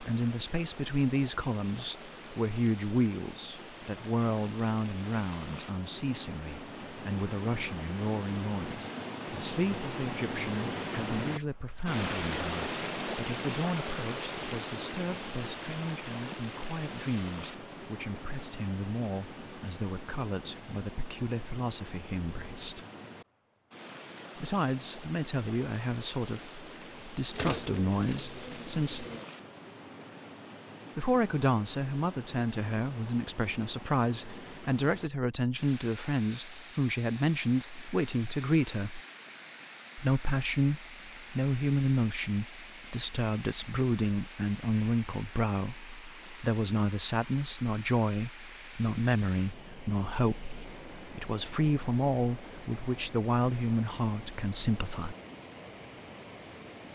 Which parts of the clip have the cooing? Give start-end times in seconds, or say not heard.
27.3-29.2.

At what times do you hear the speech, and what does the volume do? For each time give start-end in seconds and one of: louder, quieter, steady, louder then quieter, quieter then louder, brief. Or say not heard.
0.0-22.9 quieter
24.4-29.1 quieter then louder
30.9-39.0 steady
40.0-55.1 steady.